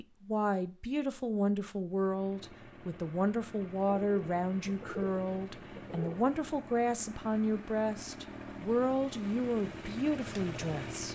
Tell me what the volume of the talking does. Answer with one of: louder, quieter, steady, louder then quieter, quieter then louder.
steady.